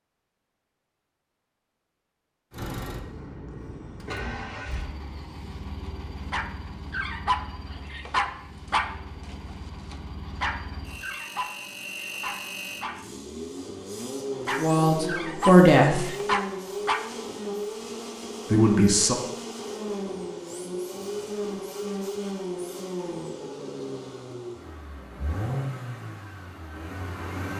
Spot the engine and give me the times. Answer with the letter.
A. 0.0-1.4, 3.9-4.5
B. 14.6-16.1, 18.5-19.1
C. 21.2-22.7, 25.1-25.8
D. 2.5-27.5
D.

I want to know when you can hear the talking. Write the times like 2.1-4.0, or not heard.
14.6-16.1, 18.5-19.1.